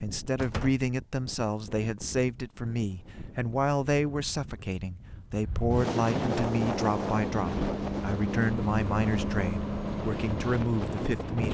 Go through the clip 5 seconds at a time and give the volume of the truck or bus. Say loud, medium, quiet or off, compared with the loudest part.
off, loud, medium.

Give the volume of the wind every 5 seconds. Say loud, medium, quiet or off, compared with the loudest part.
quiet, loud, loud.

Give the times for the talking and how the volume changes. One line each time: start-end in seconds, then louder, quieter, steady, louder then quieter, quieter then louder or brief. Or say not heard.
0.0-11.4 steady.